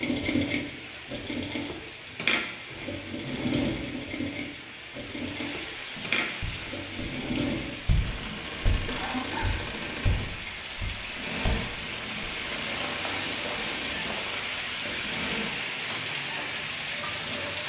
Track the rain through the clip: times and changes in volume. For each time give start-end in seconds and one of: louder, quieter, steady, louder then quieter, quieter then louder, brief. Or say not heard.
0.0-17.6 louder.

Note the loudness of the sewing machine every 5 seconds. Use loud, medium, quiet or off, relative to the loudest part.
loud, loud, medium, medium.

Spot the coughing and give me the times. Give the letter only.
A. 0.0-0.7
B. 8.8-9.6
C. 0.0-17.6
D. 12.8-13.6
B.